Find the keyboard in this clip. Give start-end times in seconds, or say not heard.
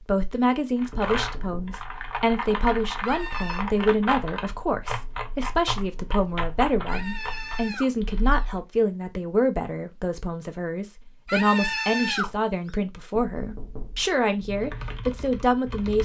0.8-8.4, 14.4-16.0.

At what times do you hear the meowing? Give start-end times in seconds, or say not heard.
3.0-3.6, 6.8-8.6, 11.2-12.3.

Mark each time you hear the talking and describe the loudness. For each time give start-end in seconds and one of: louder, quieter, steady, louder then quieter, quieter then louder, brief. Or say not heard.
0.1-16.0 steady.